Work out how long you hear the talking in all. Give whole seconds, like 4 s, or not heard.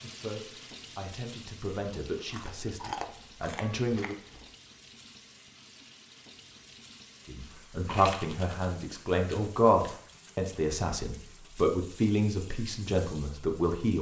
11 s.